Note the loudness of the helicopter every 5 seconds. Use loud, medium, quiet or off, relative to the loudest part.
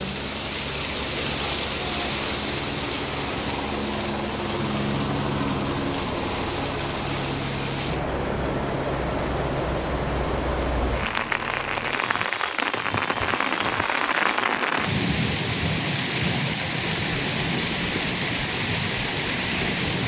loud, loud, medium, medium.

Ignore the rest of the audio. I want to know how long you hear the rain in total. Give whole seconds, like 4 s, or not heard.
20 s.